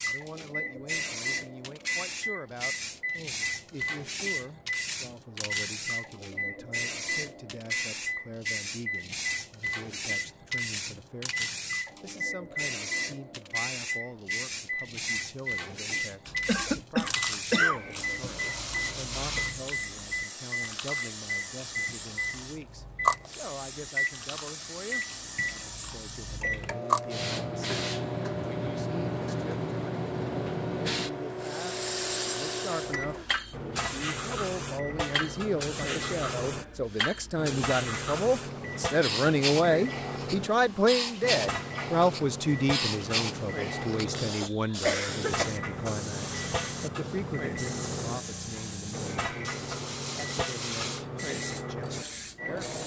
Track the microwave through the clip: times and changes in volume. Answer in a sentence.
You can hear the microwave from 0.0 to 52.8 s, at a steady volume.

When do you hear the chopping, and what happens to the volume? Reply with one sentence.
The chopping can't be heard in this clip.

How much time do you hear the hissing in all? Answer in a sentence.
The hissing can be heard for 53 seconds in total.